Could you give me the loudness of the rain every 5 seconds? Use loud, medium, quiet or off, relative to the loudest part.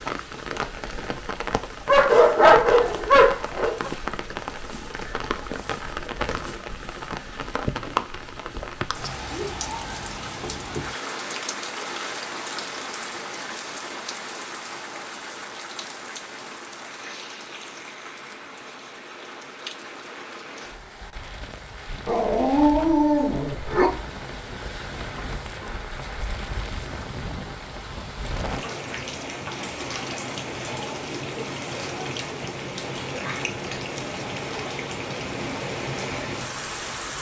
loud, loud, loud, medium, medium, loud, loud, loud.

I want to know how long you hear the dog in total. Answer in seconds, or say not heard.
4 s.